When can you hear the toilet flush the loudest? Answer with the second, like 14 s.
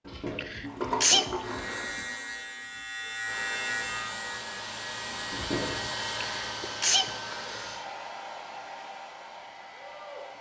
1 s.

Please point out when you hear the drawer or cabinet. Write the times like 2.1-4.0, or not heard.
not heard.